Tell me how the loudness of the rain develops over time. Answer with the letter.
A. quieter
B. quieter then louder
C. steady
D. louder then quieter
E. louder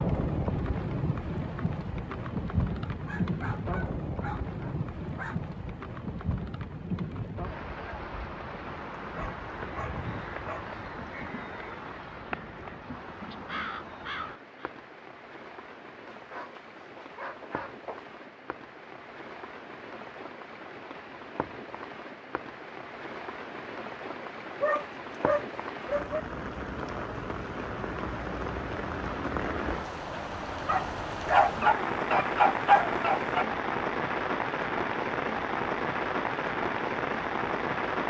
B.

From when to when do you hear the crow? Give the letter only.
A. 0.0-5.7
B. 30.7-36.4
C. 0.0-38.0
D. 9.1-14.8
D.